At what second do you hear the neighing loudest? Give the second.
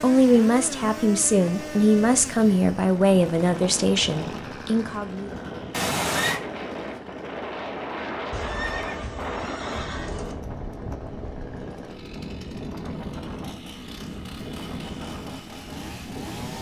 6 s.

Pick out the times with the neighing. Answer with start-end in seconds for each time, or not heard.
5.7-6.4, 8.3-10.3.